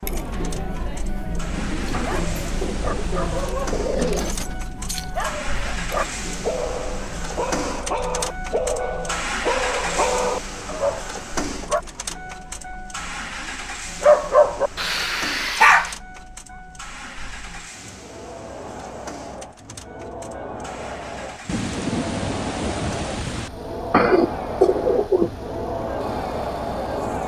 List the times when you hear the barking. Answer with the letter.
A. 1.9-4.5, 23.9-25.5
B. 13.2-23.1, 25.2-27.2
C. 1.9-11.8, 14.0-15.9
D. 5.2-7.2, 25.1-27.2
C.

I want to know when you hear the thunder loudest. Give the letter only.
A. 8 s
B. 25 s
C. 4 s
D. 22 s
D.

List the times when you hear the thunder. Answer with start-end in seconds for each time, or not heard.
1.5-3.5, 21.4-23.5.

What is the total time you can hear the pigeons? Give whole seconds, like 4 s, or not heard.
4 s.